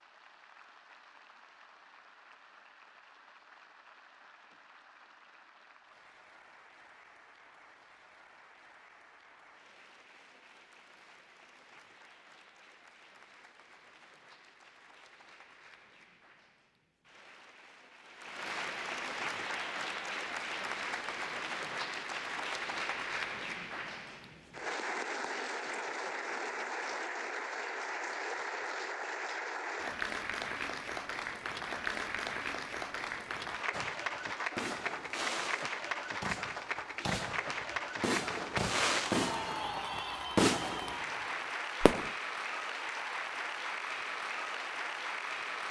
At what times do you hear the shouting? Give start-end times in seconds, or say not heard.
not heard.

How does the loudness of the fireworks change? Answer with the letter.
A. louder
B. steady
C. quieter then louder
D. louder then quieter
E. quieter
A.